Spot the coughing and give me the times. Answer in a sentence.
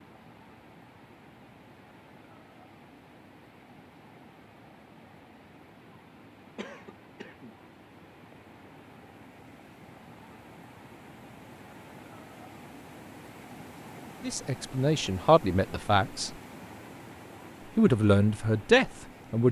The coughing can be heard from 6.5 to 7.5 s.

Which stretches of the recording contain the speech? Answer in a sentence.
You can hear the speech from 14.2 to 16.3 s and from 17.8 to 19.4 s.